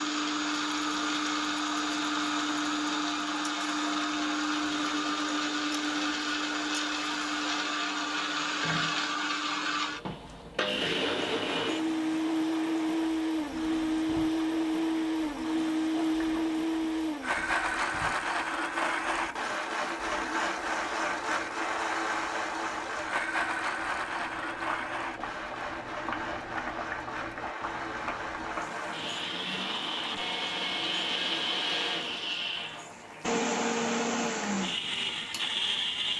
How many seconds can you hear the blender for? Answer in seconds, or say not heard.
36 s.